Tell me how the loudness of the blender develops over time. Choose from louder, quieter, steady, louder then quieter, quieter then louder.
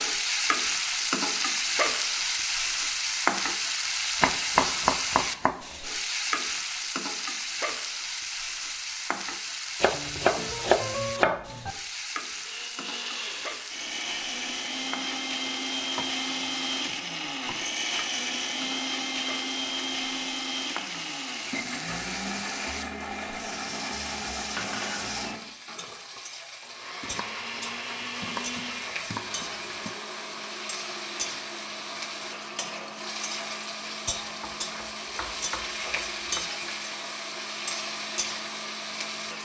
quieter.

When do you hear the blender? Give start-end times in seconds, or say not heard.
12.3-39.4.